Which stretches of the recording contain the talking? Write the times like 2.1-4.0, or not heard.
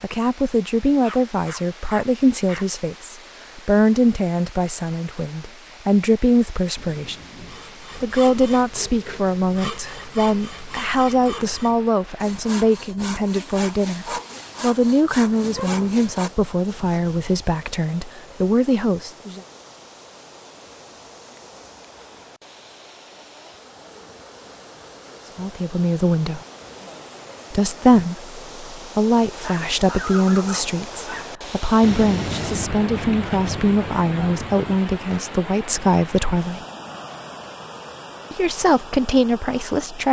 0.0-7.2, 8.0-19.4, 25.4-26.4, 27.5-36.6, 38.3-40.0.